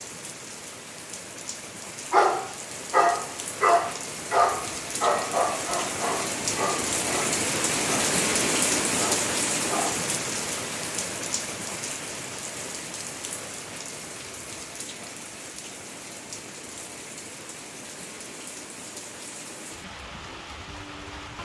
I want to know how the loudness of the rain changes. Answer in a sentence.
The loudness of the rain goes up, then down.